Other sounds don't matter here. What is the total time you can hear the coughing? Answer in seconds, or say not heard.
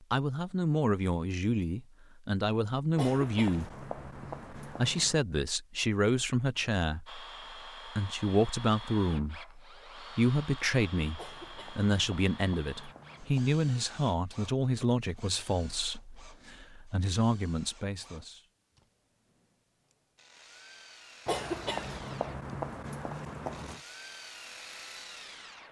7 s.